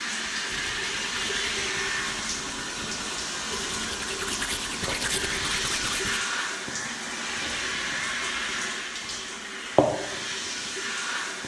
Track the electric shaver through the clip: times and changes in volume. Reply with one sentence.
You can't hear the electric shaver here.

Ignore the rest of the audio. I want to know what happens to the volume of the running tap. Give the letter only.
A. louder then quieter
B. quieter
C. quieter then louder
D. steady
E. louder
D.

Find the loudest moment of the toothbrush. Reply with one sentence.
The volume of the toothbrush peaks at 5 seconds.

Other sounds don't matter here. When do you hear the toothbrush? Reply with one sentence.
You can hear the toothbrush from 0.5 to 6.2 s.